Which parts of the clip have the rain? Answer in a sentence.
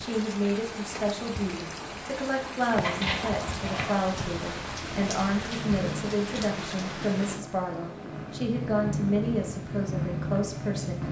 You can hear the rain from 0.0 to 7.5 s.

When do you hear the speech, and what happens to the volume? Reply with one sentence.
The speech can be heard from 0.0 to 11.0 s, at a steady volume.